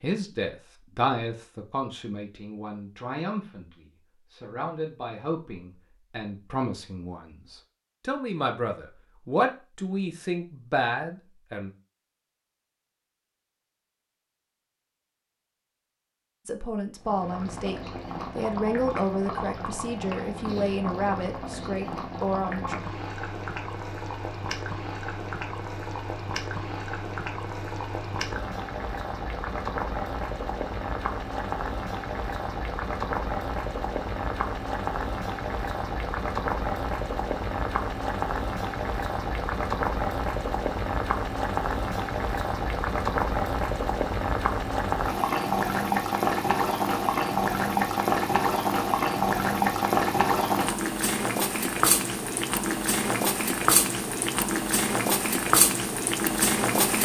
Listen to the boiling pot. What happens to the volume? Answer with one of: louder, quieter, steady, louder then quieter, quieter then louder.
louder.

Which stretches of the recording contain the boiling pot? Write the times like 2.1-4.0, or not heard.
17.0-56.9.